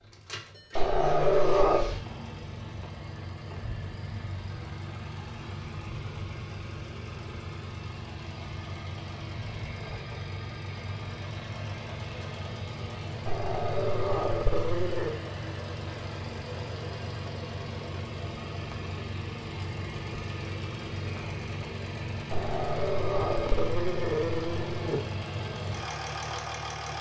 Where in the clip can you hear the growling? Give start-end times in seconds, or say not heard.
0.8-1.9, 13.2-15.2, 22.3-25.1.